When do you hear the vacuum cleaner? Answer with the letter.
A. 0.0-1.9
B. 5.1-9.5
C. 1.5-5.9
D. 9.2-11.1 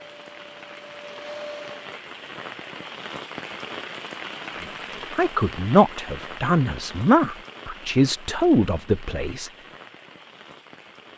A.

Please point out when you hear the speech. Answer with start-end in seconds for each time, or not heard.
5.1-9.5.